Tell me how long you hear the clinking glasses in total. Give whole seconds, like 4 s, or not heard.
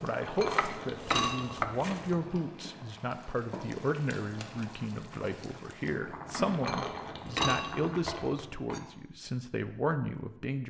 4 s.